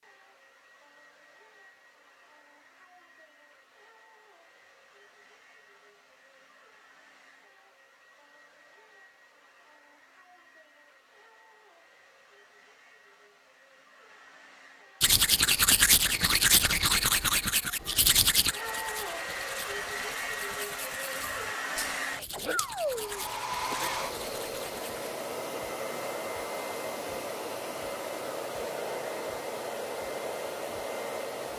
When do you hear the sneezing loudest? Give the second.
23 s.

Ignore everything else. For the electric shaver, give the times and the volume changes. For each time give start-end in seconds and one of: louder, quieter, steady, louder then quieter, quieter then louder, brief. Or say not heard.
not heard.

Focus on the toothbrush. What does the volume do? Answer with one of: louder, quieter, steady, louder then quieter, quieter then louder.
quieter.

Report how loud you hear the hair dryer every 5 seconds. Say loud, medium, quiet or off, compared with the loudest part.
quiet, quiet, quiet, loud, loud, loud, loud.